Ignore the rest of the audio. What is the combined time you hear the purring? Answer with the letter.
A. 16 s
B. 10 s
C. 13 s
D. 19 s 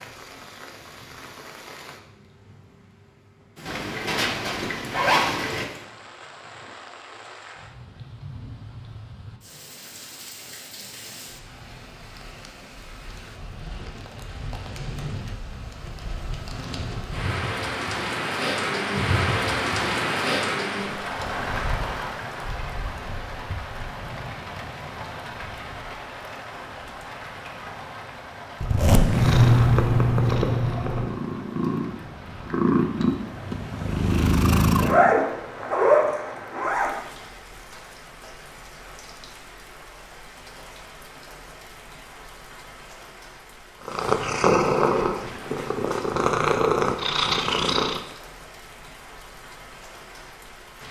B.